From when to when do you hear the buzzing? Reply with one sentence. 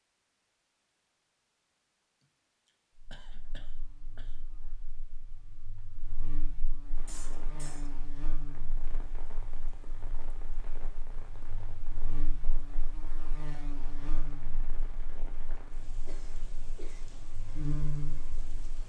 You can hear the buzzing from 3.0 to 18.8 s.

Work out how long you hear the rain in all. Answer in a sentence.
You can hear the rain for 12 seconds altogether.